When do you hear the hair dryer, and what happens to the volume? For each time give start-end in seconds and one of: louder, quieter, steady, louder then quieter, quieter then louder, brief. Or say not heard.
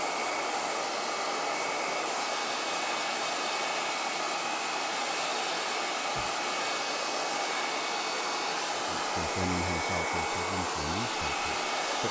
0.0-12.0 steady.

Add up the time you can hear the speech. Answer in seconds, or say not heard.
3 s.